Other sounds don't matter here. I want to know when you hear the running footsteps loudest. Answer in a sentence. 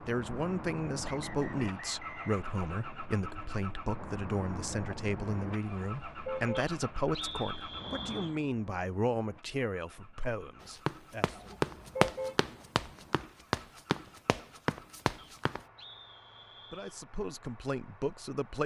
The volume of the running footsteps peaks at 12 seconds.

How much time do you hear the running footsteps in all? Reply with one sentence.
You can hear the running footsteps for 5 seconds altogether.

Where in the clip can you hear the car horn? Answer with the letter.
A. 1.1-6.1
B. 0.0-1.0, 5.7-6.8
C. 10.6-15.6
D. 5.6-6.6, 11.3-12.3
D.